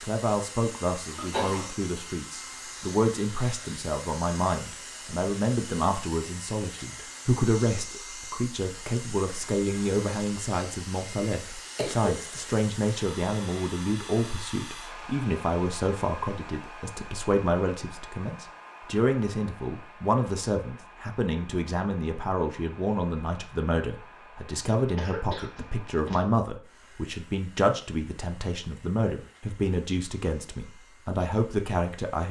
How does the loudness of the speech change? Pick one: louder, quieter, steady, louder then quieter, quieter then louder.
steady.